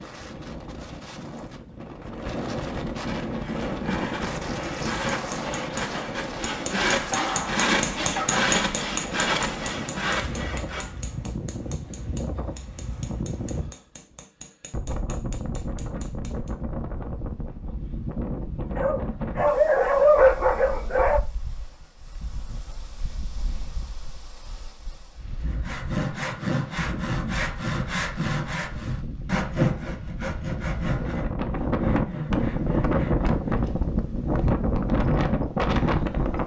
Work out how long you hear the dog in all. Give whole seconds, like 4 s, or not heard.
4 s.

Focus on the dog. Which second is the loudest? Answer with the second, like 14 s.
20 s.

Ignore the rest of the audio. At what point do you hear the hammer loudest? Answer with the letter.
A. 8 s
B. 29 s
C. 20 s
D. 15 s
A.